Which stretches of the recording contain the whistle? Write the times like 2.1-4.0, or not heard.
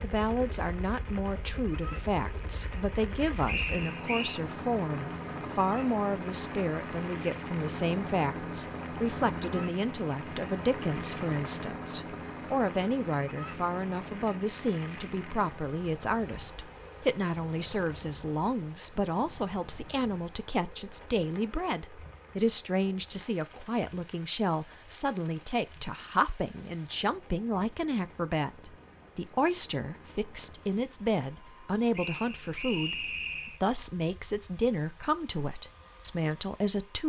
3.5-4.4, 31.9-33.6.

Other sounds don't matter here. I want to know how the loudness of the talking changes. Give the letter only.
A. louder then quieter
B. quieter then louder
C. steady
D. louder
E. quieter
C.